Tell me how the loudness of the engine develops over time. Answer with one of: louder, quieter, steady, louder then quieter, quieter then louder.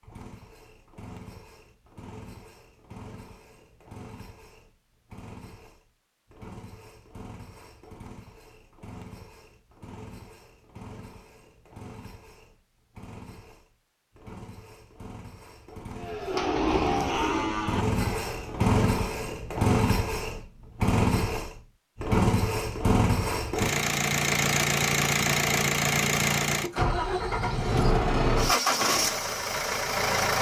louder.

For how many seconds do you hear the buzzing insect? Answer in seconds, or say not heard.
not heard.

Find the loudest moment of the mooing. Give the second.
17 s.